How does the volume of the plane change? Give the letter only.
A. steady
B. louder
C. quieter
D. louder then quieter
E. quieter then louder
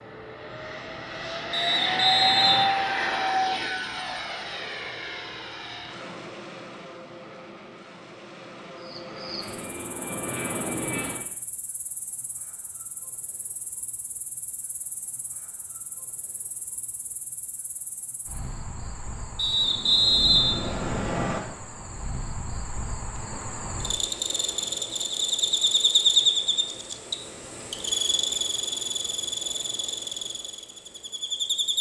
E.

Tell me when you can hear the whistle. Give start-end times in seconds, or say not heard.
1.5-2.7, 19.4-21.4.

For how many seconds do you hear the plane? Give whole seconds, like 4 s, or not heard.
11 s.